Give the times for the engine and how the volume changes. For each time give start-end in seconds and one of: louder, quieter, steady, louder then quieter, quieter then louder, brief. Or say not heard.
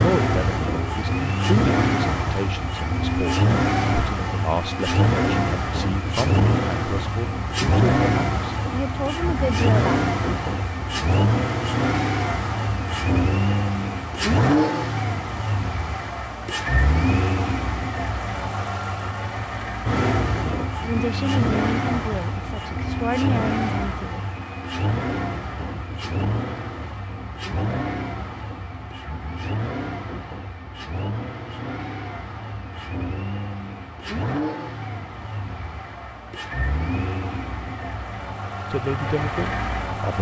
0.0-40.1 quieter.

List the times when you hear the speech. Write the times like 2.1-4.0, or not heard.
0.0-10.1, 20.8-24.2, 38.7-40.1.